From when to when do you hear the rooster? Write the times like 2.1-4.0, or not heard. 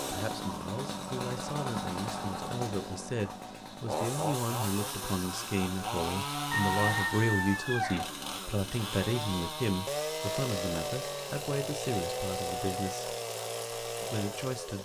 6.5-8.1.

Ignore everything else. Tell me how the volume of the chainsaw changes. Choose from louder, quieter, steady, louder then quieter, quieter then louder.
steady.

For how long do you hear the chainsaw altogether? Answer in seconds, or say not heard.
15 s.